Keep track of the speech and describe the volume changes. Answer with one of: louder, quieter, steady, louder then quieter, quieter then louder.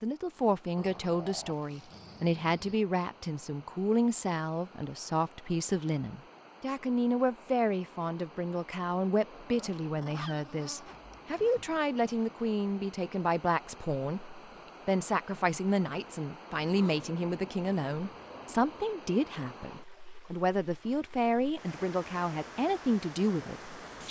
steady.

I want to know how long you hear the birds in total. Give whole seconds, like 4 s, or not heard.
not heard.